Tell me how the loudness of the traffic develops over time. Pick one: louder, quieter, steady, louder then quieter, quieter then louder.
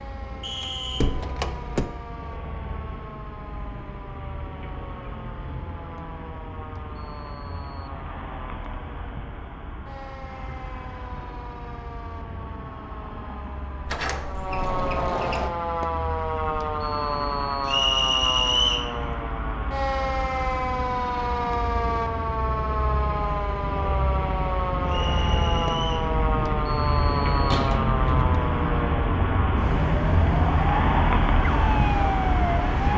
louder.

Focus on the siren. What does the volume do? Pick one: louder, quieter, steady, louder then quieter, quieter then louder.
louder.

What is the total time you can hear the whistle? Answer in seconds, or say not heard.
3 s.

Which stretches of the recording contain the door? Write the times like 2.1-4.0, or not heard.
0.6-1.9, 13.8-15.5, 27.1-28.2.